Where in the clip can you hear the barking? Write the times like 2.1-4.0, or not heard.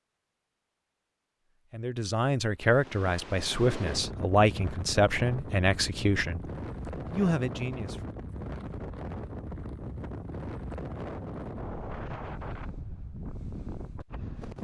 not heard.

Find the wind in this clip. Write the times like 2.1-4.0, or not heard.
2.6-14.5.